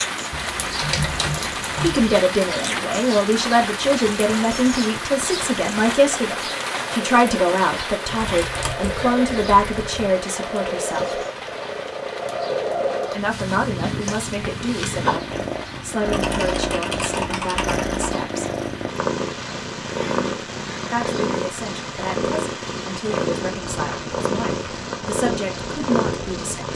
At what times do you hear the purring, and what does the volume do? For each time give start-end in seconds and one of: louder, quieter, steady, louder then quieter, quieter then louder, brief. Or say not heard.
0.0-26.7 louder.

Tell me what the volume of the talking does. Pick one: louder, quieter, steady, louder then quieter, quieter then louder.
quieter.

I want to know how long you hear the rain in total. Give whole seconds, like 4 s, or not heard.
27 s.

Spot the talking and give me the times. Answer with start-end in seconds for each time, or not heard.
1.4-11.2, 13.1-18.6, 20.9-26.7.